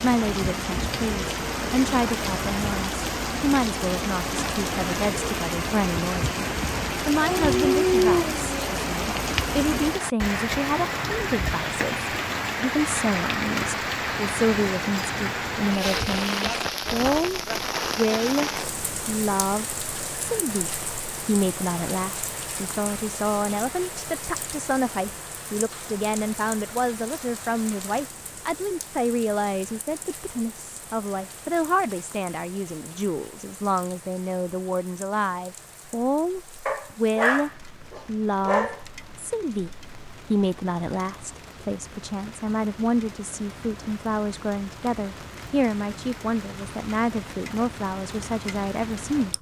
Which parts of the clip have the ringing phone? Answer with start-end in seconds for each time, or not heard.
not heard.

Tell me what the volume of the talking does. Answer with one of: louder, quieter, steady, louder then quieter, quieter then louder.
steady.